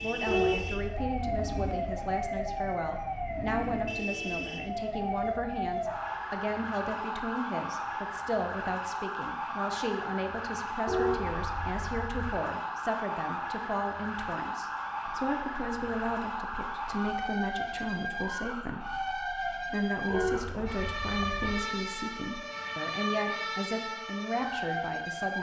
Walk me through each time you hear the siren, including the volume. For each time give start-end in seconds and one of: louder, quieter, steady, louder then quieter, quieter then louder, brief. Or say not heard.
0.0-25.3 steady.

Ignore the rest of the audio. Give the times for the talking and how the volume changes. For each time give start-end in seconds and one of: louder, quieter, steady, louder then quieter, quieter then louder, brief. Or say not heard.
0.0-25.3 steady.